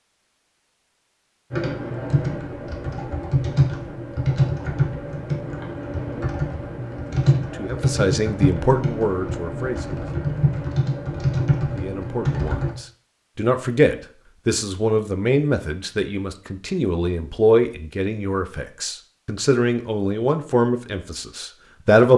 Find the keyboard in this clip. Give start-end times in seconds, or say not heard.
1.5-12.8.